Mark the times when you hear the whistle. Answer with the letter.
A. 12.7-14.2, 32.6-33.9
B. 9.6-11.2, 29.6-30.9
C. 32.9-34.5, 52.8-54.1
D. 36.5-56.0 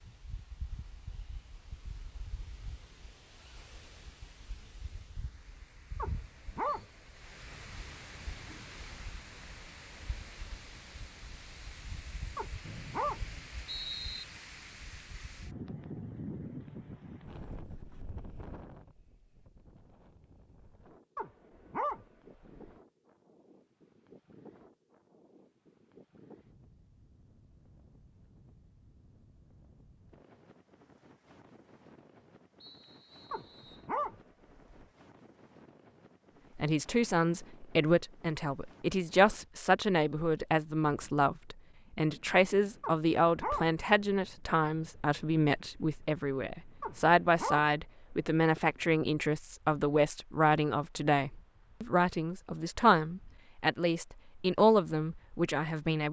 A.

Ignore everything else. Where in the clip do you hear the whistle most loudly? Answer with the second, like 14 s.
14 s.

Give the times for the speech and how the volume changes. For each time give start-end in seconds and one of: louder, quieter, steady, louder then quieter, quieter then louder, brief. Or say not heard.
36.5-56.0 steady.